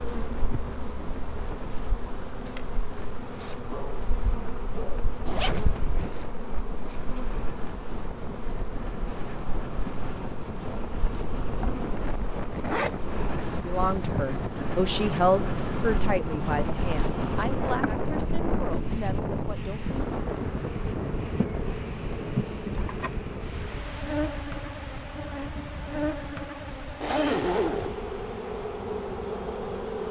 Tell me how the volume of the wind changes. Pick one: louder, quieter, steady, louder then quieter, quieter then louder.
louder then quieter.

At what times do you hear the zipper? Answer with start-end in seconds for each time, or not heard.
5.2-6.1, 12.5-14.3, 27.0-27.9.